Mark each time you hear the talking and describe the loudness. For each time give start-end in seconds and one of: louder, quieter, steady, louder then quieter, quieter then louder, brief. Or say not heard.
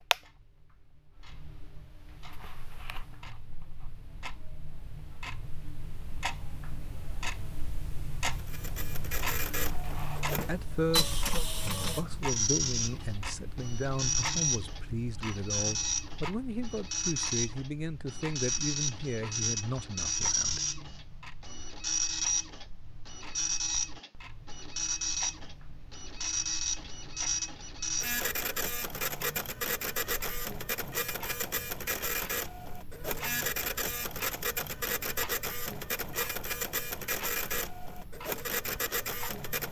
10.4-20.6 steady.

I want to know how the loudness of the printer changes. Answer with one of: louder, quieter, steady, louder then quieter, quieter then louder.
steady.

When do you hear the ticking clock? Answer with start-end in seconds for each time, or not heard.
0.0-39.6.